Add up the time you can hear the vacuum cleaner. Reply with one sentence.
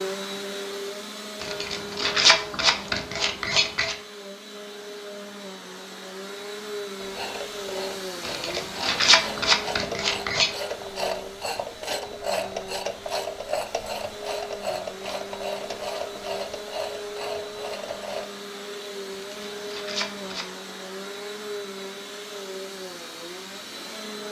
You can hear the vacuum cleaner for 24 seconds altogether.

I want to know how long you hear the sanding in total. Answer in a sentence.
The sanding can be heard for 6 seconds in total.